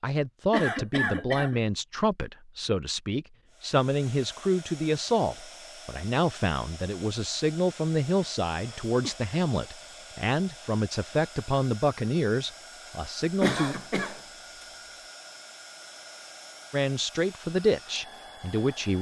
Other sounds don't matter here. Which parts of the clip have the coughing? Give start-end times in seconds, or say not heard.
0.5-1.6, 8.2-9.2, 13.4-14.2.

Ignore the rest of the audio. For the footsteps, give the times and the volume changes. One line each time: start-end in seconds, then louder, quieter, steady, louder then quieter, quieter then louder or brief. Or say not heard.
not heard.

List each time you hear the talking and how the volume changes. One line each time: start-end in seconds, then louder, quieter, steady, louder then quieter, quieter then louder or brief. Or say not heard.
0.0-13.8 steady
16.7-18.9 brief.